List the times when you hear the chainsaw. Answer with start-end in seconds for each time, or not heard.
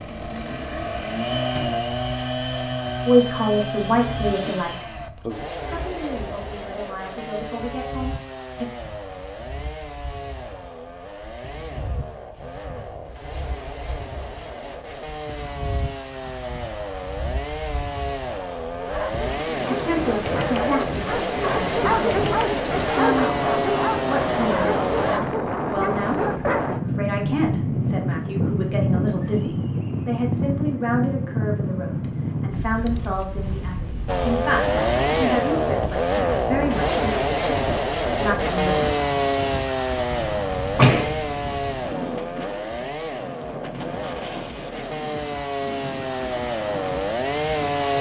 0.0-25.2, 34.0-47.9.